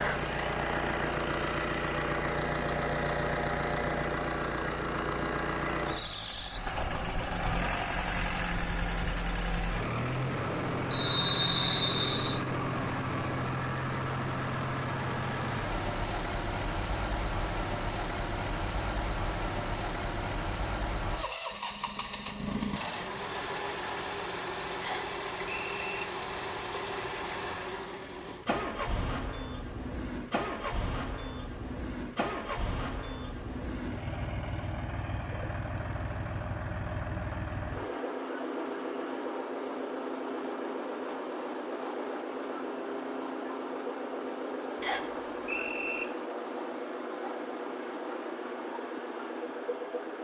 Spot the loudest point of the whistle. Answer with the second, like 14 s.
11 s.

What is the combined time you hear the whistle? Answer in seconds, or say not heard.
4 s.